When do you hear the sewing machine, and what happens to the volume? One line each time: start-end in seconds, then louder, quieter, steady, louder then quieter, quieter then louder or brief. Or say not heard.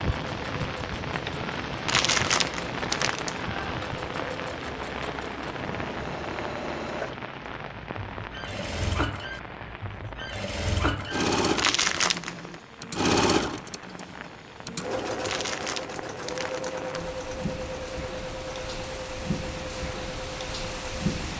0.0-21.1 louder then quieter.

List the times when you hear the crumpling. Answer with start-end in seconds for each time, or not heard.
1.9-3.5, 11.6-12.6, 15.2-17.1.